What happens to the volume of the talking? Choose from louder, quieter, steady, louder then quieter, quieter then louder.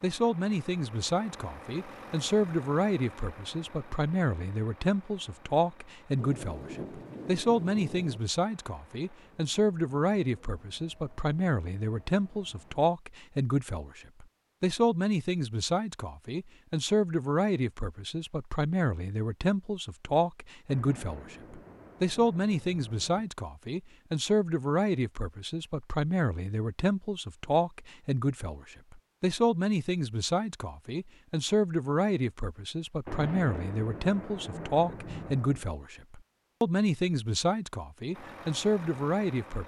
steady.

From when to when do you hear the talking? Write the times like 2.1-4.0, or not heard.
0.0-39.6.